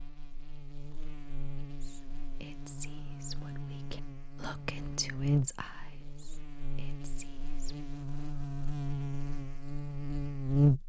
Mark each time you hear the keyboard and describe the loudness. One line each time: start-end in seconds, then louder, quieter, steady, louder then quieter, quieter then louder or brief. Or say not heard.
not heard.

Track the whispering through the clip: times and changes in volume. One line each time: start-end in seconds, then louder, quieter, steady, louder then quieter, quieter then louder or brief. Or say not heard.
1.8-7.8 quieter.